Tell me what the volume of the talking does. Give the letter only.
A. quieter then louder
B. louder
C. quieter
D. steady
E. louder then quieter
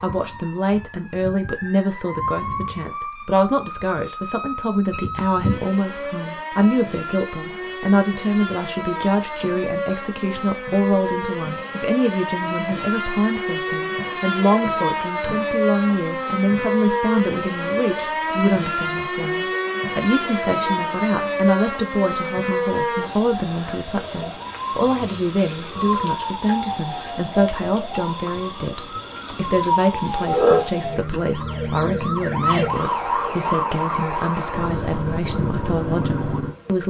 D.